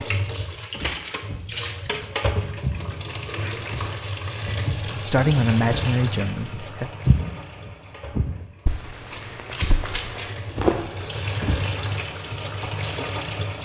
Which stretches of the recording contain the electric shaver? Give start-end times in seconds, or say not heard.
not heard.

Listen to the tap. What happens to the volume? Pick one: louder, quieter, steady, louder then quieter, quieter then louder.
quieter then louder.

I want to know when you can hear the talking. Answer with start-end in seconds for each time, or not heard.
5.0-6.9.